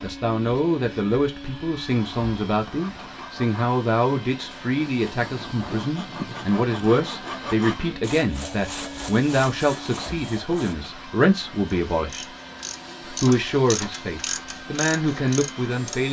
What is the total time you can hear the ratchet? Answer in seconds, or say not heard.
4 s.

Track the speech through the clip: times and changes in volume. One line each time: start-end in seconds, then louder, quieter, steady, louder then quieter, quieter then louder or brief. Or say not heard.
0.0-12.2 steady
13.1-16.0 brief.